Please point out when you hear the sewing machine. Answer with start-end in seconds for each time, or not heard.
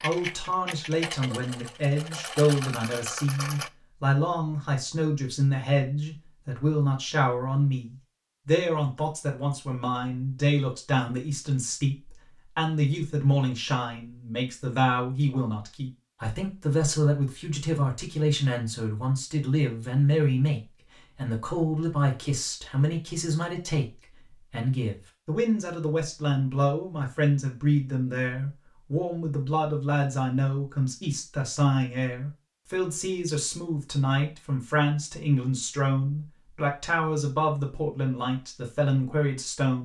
0.0-3.7.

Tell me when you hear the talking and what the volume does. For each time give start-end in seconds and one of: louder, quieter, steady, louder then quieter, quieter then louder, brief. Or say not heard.
0.0-39.7 steady.